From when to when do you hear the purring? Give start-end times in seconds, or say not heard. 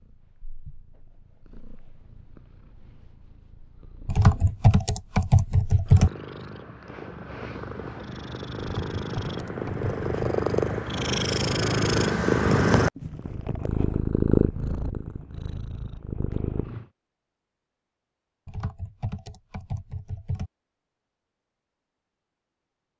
0.0-16.9.